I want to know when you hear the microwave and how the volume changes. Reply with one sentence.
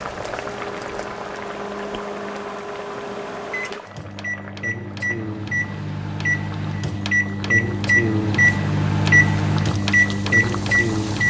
You can hear the microwave from 0.0 to 11.2 s, getting louder.